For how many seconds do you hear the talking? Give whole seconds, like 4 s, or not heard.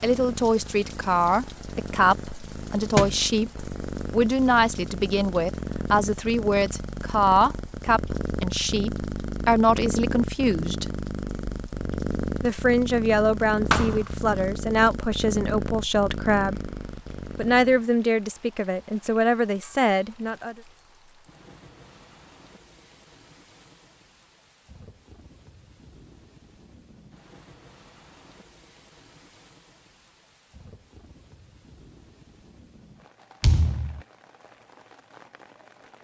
18 s.